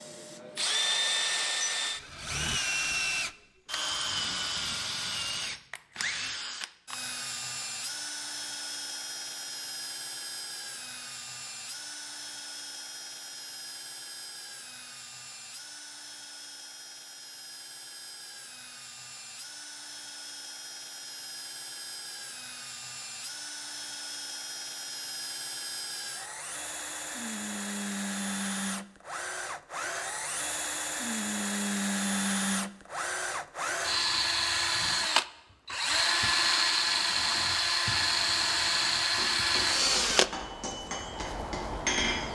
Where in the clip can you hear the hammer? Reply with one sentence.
The hammer can be heard from 39.1 to 42.3 s.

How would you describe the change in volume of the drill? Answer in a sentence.
The loudness of the drill goes down, then up.